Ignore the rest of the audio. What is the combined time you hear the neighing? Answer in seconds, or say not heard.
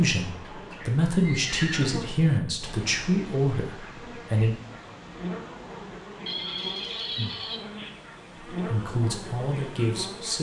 3 s.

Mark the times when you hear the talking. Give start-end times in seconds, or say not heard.
0.0-4.5, 8.6-10.3.